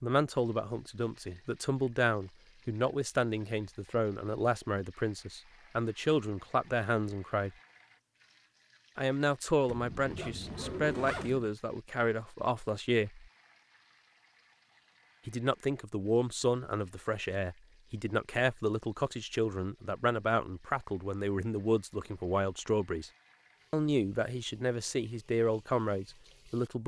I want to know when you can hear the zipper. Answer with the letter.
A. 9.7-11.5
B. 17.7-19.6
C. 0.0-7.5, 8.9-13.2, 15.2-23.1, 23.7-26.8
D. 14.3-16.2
A.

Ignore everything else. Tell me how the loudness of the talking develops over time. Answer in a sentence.
The volume of the talking stays about the same.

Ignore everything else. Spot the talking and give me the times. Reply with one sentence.
The talking can be heard from 0.0 to 7.5 s, from 8.9 to 13.2 s, from 15.2 to 23.1 s and from 23.7 to 26.8 s.